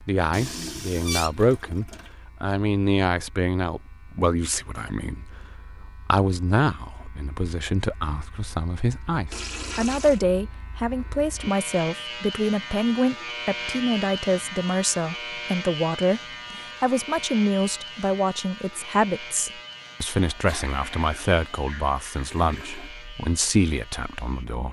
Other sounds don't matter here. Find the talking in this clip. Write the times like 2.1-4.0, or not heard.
0.0-24.6.